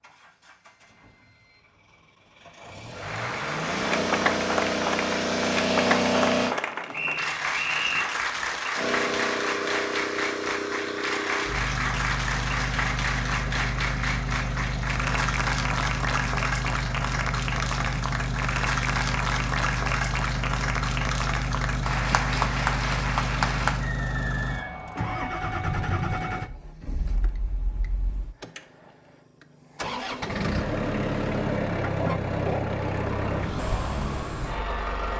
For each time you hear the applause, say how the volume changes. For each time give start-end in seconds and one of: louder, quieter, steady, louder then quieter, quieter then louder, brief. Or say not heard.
3.0-23.9 steady.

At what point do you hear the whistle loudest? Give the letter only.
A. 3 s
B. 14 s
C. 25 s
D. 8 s
D.